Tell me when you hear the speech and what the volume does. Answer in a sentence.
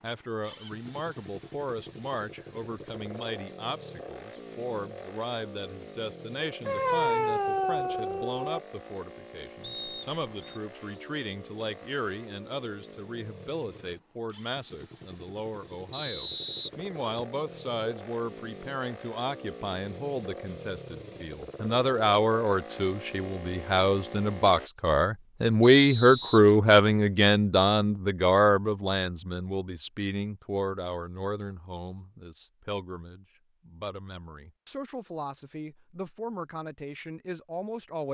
You can hear the speech from 0.0 to 38.0 s, getting louder then quieter.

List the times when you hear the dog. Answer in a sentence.
The dog can be heard from 6.7 to 8.6 s.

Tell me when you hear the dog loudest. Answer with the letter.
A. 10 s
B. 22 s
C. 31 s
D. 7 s
D.